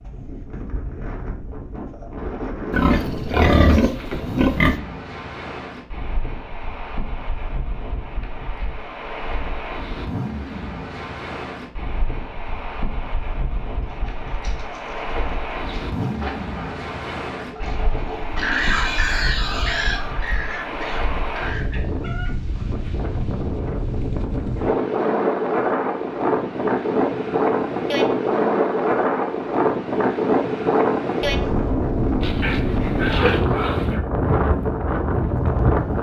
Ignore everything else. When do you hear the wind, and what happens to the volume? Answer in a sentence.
You can hear the wind from 0.0 to 35.9 s, getting louder.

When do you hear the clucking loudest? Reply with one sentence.
The loudest moment of the clucking is at 19 seconds.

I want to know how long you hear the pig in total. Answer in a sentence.
You can hear the pig for 7 seconds altogether.